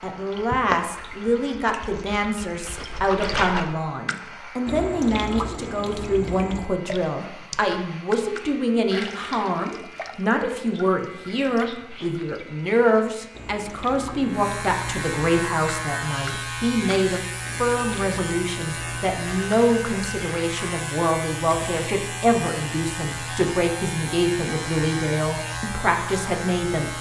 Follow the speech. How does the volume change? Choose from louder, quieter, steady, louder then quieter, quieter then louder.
steady.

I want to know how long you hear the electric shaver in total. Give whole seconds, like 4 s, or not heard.
27 s.